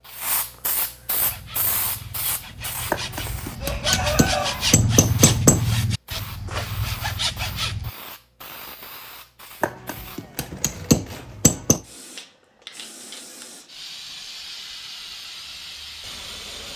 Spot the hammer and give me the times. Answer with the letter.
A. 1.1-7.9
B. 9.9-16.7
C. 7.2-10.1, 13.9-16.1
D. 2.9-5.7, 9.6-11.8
D.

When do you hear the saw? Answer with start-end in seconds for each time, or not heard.
1.1-7.9.